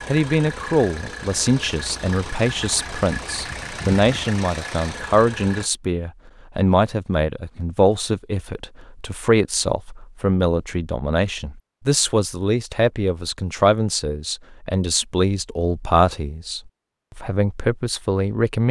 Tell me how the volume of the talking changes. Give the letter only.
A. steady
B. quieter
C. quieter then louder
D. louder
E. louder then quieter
A.